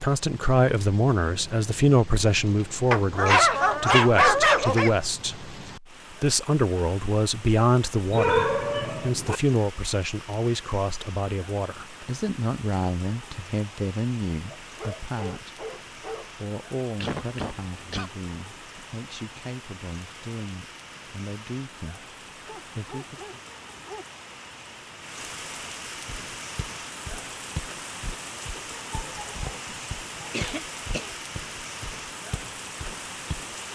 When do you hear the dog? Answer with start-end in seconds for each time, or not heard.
2.9-4.9, 8.1-9.4, 14.5-16.2, 22.4-24.1, 28.9-30.4.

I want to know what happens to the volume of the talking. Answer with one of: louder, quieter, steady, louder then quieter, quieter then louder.
quieter.